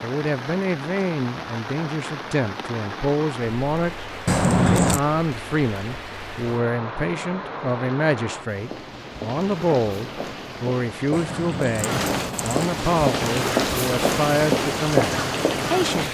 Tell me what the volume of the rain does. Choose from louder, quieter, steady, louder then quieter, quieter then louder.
louder.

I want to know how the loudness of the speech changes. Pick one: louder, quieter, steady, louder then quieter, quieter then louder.
steady.